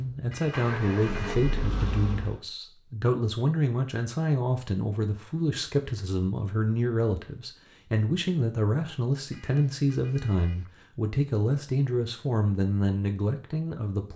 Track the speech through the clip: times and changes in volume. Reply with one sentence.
You can hear the speech from 0.0 to 14.1 s, at a steady volume.